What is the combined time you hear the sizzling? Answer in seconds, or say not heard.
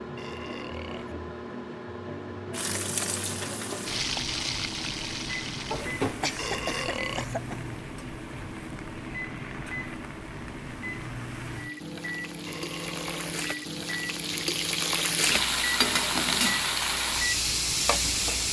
16 s.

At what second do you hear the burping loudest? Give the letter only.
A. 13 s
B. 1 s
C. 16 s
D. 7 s
D.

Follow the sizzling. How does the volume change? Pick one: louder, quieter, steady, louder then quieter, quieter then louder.
quieter then louder.